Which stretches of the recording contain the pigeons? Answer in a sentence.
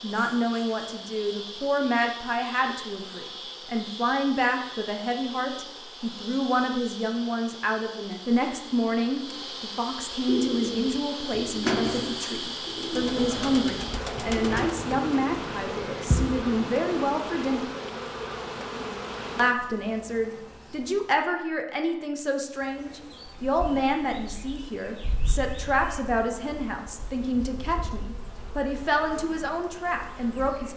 You can hear the pigeons from 10.2 to 17.0 s.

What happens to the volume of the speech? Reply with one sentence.
The loudness of the speech stays about the same.